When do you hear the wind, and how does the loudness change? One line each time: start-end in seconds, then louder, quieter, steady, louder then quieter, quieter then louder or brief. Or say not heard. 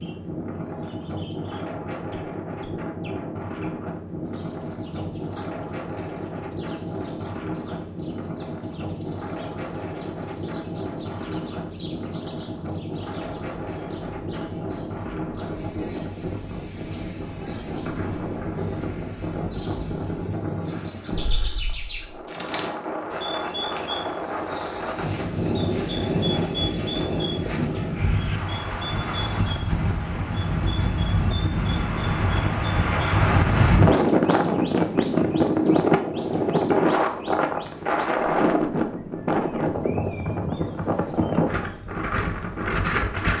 0.0-43.3 louder.